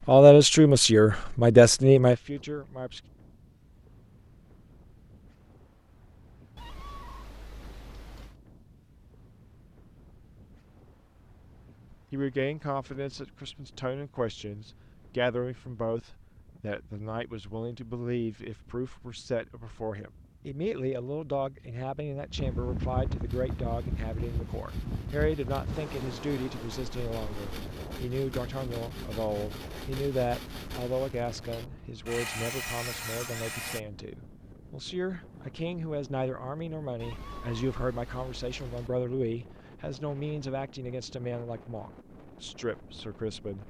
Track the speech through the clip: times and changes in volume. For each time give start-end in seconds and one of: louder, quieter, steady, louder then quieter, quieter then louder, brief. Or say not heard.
0.1-3.0 brief
11.9-43.6 steady.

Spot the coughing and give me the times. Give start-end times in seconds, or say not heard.
not heard.